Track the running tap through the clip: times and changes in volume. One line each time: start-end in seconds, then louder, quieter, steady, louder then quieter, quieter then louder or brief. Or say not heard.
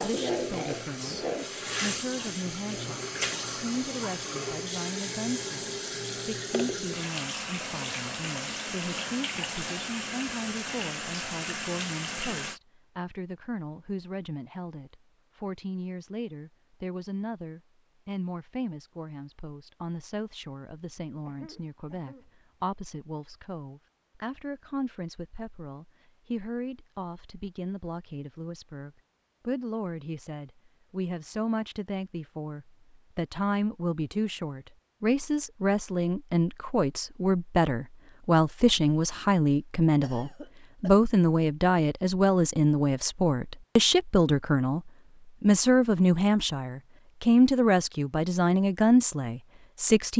0.0-12.6 steady.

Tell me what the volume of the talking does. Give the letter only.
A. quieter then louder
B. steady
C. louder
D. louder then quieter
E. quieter
C.